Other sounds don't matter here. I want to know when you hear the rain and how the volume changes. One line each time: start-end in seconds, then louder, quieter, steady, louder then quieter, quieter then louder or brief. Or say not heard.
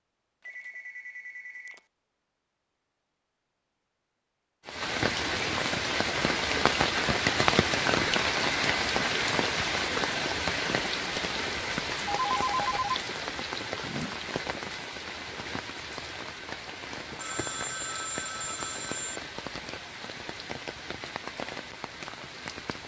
4.7-22.8 quieter.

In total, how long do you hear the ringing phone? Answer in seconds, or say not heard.
4 s.